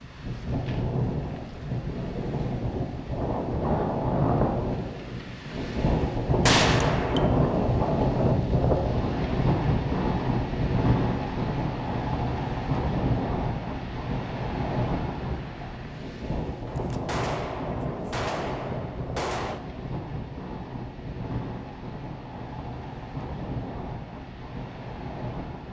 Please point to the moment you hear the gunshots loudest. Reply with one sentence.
The volume of the gunshots peaks at 7 seconds.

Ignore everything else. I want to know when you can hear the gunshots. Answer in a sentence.
You can hear the gunshots from 6.4 to 7.3 s and from 16.6 to 19.6 s.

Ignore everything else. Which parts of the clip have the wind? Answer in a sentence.
The wind can be heard from 0.0 to 25.6 s.